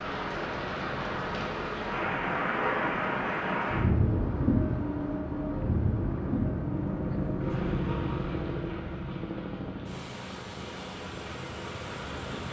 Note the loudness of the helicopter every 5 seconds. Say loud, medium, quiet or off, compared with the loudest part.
medium, loud, medium.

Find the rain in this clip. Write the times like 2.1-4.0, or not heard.
0.0-12.4.